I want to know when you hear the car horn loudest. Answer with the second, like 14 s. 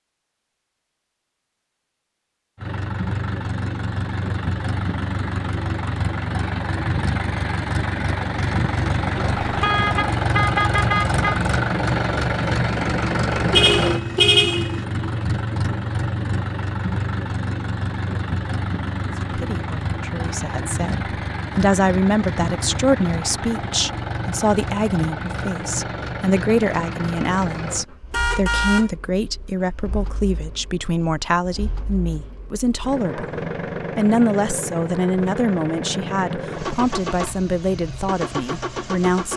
14 s.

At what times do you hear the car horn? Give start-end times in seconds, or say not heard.
9.4-11.4, 13.5-14.8, 28.1-28.9.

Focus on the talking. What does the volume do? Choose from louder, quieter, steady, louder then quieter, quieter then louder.
steady.